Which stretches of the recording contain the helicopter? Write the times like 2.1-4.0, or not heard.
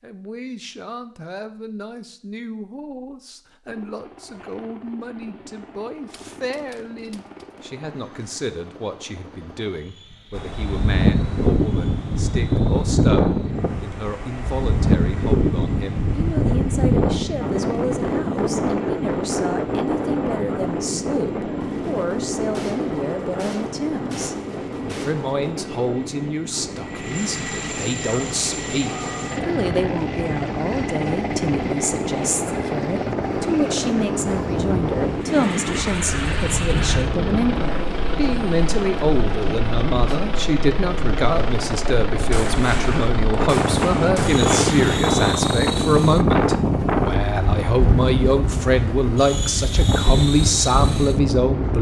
3.6-51.7.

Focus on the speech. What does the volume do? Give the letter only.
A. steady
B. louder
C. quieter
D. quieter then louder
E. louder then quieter
B.